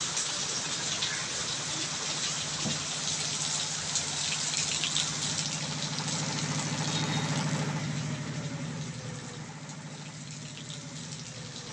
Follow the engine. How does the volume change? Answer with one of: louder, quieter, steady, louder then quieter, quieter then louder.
louder then quieter.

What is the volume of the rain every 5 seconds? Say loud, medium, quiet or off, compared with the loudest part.
loud, medium, quiet.